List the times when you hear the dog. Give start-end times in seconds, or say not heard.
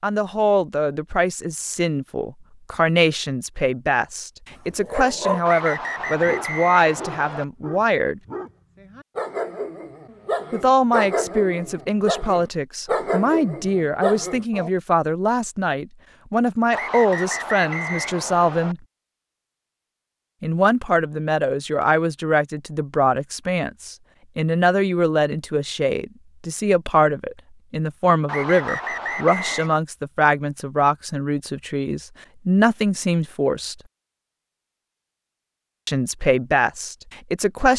4.7-14.7.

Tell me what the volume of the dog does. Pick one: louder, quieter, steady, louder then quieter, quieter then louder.
quieter then louder.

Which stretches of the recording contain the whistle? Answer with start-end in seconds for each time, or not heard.
5.5-7.5, 16.7-18.8, 28.2-29.8.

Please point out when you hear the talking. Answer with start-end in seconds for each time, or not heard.
0.0-8.2, 10.5-18.8, 20.4-33.8, 35.9-37.7.